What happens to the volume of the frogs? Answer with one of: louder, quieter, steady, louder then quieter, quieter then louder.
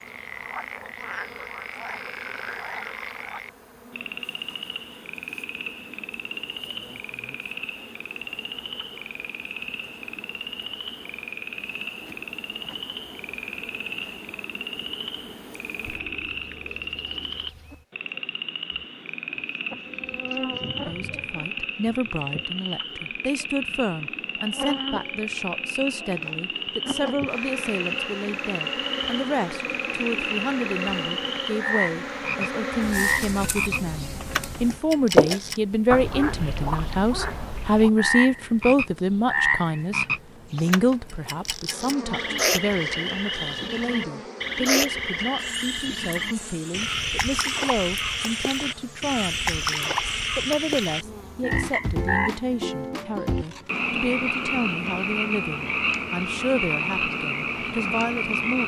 louder.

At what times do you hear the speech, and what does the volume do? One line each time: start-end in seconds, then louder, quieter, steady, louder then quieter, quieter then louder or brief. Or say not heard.
20.9-58.6 louder then quieter.